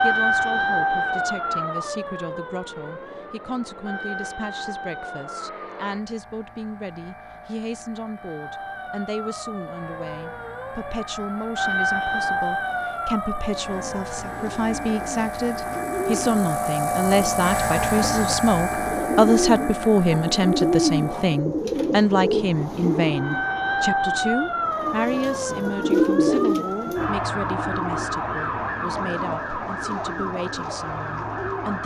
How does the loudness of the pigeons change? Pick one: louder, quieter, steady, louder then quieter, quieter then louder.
louder then quieter.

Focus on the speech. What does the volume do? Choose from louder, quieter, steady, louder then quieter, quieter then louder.
louder then quieter.